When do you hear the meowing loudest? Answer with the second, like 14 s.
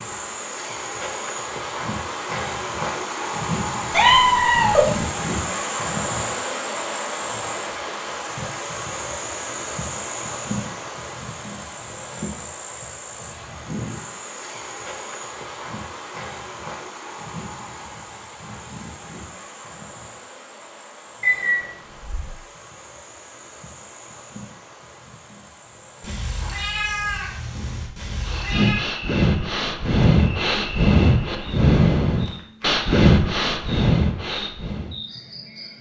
4 s.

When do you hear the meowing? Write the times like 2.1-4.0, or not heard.
3.9-5.0, 21.2-22.2, 26.0-28.8.